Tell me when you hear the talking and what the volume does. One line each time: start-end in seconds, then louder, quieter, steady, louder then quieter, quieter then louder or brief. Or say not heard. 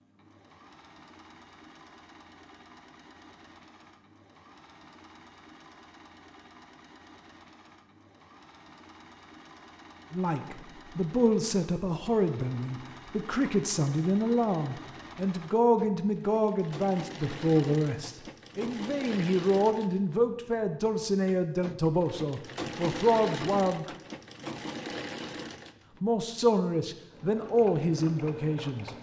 10.1-23.9 steady
26.0-28.9 brief.